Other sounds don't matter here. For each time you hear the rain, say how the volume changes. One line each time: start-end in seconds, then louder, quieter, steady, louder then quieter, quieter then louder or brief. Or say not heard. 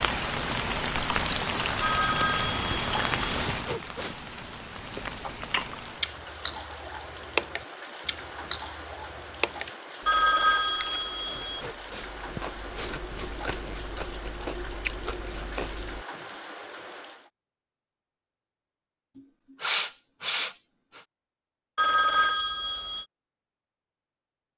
0.0-17.3 quieter.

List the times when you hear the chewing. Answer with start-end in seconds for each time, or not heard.
4.8-16.1.